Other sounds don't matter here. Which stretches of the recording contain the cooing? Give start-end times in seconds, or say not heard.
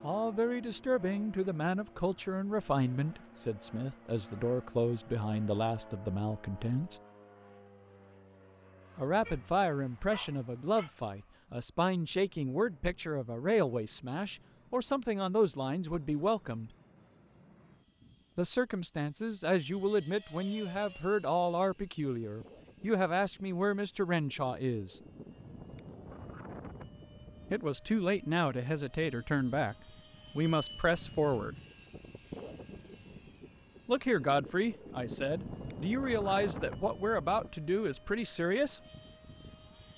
not heard.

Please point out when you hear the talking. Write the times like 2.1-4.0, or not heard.
0.0-7.0, 8.9-16.7, 18.4-25.0, 27.5-29.8, 30.4-31.6, 33.9-38.8.